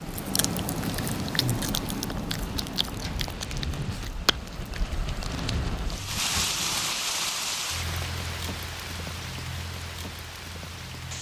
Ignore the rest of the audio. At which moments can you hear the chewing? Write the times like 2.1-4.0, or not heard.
0.0-6.4.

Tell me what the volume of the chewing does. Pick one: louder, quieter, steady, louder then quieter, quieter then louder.
quieter.